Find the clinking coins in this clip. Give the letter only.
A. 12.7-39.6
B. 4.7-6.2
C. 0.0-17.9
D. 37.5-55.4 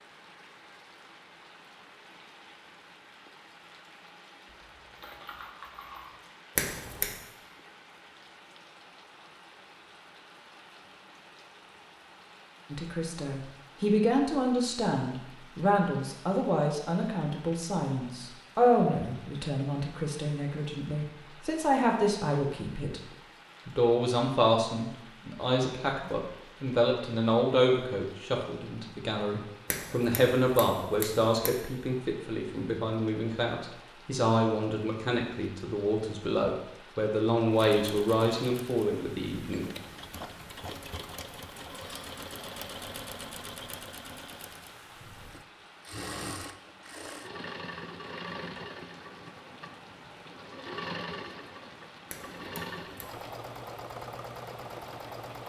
B.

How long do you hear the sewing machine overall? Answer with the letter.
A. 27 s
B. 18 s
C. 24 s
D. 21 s
B.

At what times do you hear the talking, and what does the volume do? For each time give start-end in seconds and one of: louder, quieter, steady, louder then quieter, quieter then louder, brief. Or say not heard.
12.7-39.6 steady.